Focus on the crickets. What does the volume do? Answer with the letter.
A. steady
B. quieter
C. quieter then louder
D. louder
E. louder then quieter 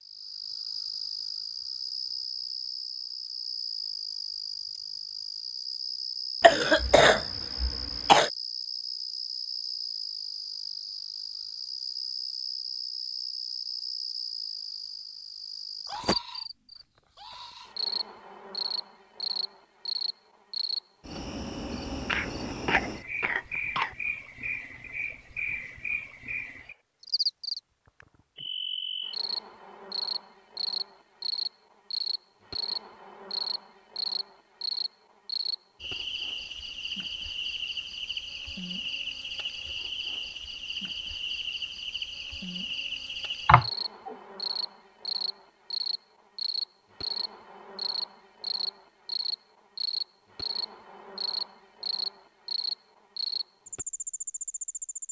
A.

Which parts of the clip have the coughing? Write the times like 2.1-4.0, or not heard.
6.4-8.3, 22.1-23.9, 43.5-44.1.